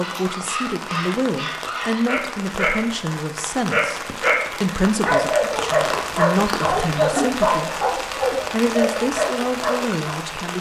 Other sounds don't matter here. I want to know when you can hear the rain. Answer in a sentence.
You can hear the rain from 0.0 to 10.5 s.